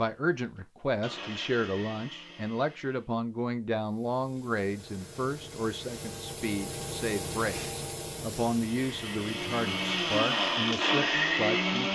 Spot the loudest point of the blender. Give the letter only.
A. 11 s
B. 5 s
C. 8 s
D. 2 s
A.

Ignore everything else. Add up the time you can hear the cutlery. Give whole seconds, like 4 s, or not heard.
not heard.